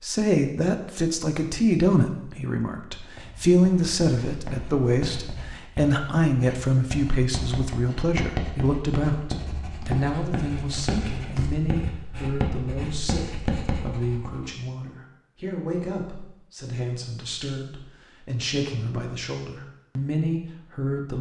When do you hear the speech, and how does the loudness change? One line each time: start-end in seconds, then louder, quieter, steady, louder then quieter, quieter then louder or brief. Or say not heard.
0.0-21.1 quieter.